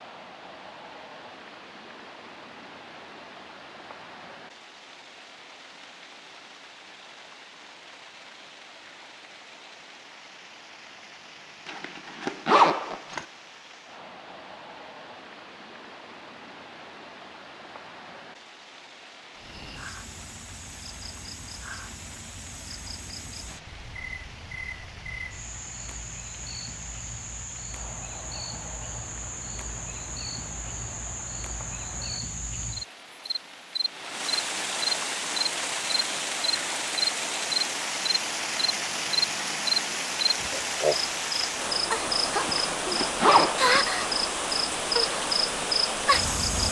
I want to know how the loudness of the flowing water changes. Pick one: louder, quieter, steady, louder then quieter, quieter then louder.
louder.